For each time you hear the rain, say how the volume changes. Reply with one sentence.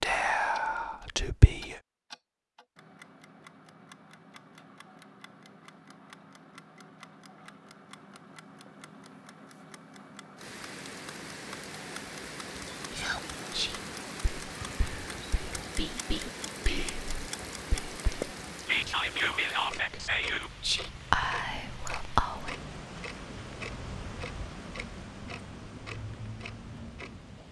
You can hear the rain from 10.3 to 27.4 s, at a steady volume.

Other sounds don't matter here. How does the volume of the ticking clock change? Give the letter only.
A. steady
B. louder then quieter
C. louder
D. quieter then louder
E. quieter
C.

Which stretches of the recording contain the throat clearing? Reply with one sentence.
The throat clearing can't be heard in this clip.